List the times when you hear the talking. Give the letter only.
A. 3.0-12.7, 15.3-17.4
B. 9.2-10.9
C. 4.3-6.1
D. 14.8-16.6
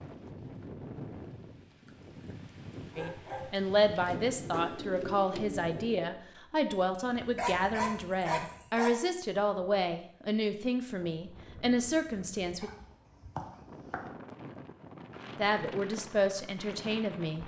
A.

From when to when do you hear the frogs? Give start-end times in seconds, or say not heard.
not heard.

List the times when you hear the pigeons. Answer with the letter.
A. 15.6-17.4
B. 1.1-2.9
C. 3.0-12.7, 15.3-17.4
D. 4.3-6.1
D.